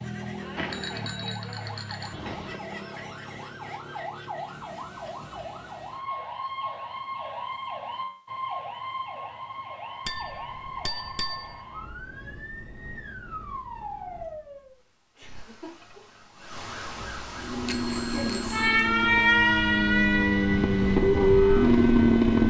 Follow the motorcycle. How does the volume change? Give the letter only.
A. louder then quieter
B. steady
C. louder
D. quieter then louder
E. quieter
C.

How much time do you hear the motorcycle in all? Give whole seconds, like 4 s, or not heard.
5 s.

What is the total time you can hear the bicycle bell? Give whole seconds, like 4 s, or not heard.
5 s.